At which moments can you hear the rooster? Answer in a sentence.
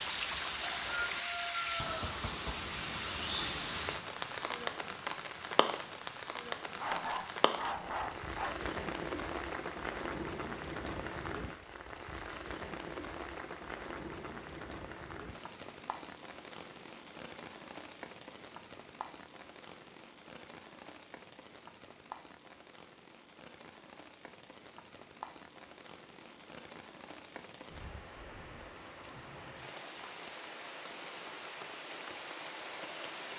You can hear the rooster from 0.7 to 2.0 s.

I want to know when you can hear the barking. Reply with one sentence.
The barking can be heard from 6.8 to 8.6 s.